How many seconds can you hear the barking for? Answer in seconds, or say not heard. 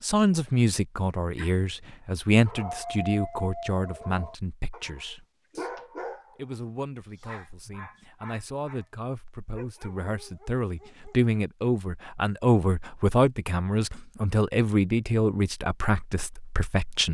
10 s.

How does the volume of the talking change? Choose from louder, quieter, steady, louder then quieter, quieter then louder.
quieter then louder.